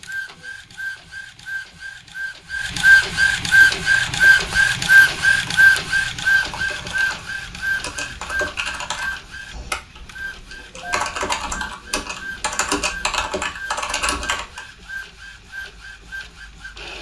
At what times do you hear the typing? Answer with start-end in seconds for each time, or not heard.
3.5-14.6.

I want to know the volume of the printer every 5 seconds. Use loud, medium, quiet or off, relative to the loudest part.
loud, loud, quiet, quiet.